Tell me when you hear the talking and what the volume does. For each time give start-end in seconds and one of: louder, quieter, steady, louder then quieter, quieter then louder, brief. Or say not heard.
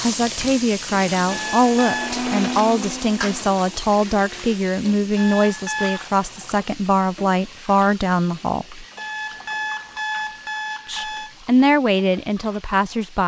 0.0-8.8 steady
10.8-13.2 brief.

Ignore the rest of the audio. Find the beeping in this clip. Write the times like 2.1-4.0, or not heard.
1.2-2.2, 5.2-6.0, 8.9-11.3.